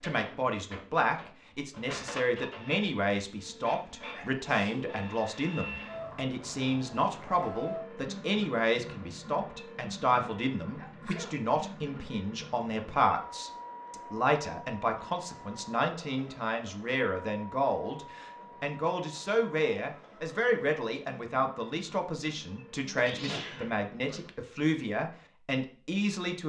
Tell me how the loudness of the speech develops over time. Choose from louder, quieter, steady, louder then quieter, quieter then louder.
steady.